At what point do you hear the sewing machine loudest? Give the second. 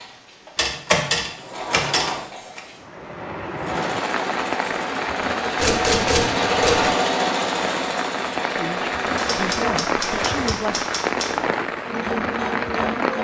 7 s.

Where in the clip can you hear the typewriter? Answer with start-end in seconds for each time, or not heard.
0.6-2.6, 5.5-6.9, 9.2-11.4.